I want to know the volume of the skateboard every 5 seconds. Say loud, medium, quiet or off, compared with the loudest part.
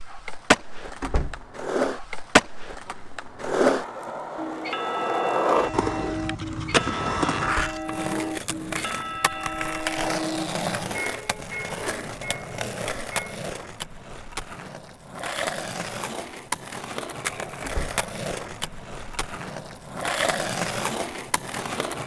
loud, loud, medium, medium, loud.